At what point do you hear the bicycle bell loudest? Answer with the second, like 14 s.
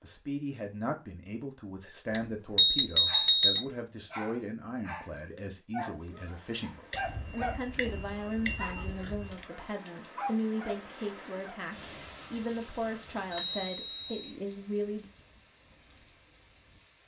3 s.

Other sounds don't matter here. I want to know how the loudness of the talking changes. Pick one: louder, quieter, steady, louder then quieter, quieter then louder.
steady.